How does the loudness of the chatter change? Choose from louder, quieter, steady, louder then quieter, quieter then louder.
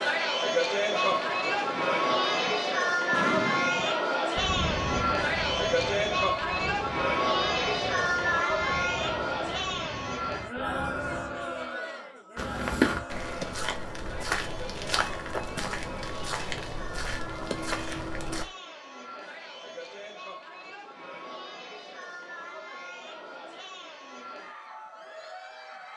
quieter.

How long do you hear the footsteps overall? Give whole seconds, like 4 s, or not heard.
6 s.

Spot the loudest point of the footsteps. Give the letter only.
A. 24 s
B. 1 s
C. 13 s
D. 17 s
C.